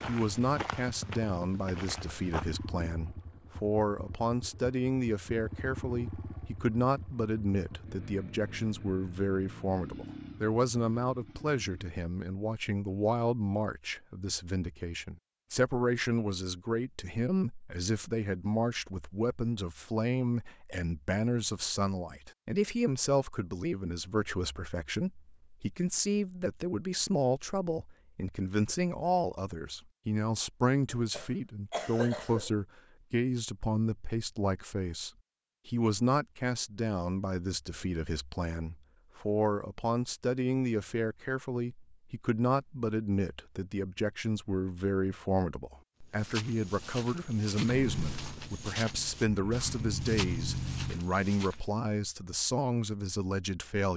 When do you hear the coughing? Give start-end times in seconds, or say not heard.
30.9-32.5.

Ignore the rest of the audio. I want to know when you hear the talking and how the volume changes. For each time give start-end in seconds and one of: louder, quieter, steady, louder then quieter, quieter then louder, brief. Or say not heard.
0.1-53.9 steady.